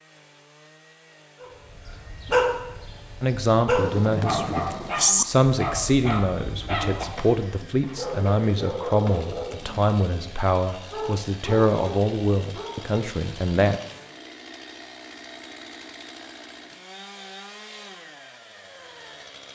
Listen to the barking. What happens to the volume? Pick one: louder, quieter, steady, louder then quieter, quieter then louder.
quieter.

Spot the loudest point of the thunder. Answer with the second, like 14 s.
5 s.